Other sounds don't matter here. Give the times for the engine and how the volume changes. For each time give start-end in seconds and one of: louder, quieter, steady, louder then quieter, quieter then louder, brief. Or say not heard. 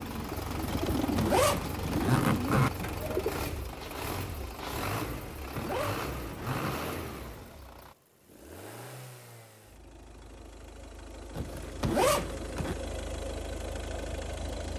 0.0-14.7 quieter then louder.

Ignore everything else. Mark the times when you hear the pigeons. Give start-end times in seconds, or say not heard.
0.0-3.4.